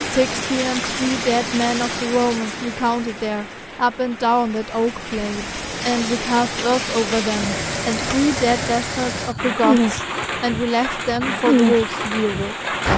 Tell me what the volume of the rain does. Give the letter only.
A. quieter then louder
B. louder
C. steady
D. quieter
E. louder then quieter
A.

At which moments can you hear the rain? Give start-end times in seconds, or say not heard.
0.0-12.9.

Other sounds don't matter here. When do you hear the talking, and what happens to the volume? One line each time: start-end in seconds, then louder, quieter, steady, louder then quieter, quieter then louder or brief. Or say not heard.
0.0-12.9 steady.